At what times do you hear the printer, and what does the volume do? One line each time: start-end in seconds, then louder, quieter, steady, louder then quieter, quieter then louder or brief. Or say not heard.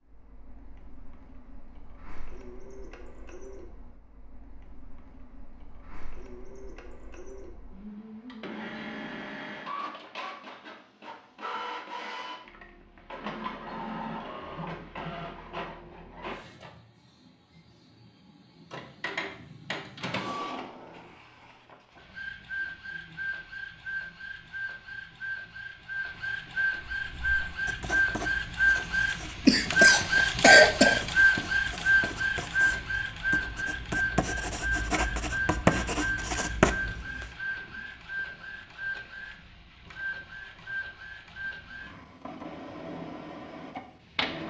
0.0-44.4 louder then quieter.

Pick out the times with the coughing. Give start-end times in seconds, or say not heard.
29.4-31.0.